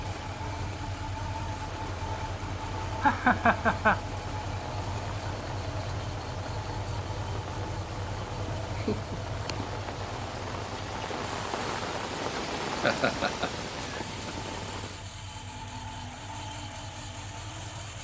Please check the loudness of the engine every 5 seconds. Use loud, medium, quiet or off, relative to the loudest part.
loud, loud, medium, loud.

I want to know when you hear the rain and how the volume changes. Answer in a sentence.
You can hear the rain from 0.0 to 15.1 s, getting louder.